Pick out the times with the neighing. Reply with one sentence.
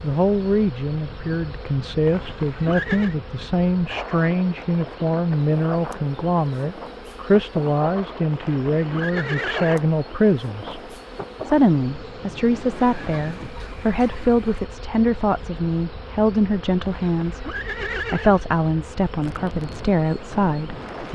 You can hear the neighing from 2.0 to 3.1 s, from 8.3 to 9.8 s and from 17.1 to 18.4 s.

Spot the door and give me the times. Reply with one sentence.
The door can't be heard in this clip.